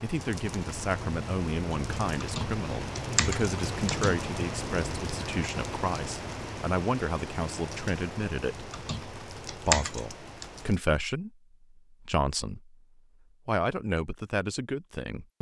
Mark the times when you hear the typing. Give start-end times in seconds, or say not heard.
2.2-4.2, 8.7-10.5.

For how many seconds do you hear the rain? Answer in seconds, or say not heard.
11 s.